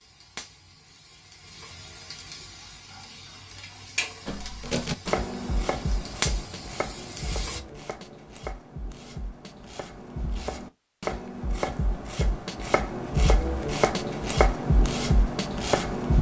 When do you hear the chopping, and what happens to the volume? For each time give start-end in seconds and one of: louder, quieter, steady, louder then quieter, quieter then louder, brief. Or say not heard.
4.2-16.1 quieter then louder.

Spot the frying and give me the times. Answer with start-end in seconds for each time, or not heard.
0.0-7.6.